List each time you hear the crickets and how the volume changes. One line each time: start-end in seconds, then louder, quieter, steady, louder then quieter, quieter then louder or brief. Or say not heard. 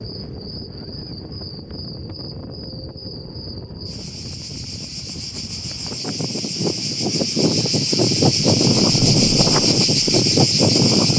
0.0-11.1 louder.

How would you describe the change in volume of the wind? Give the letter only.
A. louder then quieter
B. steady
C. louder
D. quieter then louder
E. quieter
C.